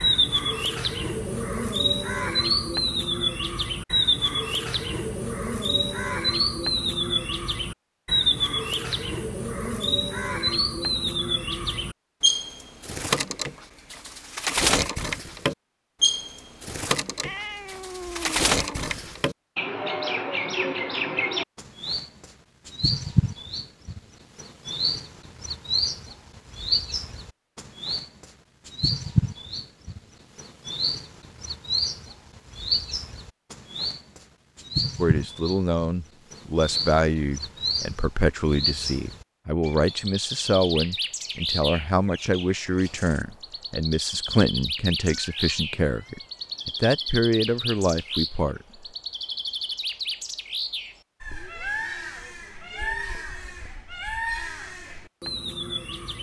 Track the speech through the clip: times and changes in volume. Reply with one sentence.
You can hear the speech from 35.0 to 48.6 s, at a steady volume.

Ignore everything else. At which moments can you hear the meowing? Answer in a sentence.
The meowing can be heard from 17.2 to 19.2 s and from 45.3 to 46.6 s.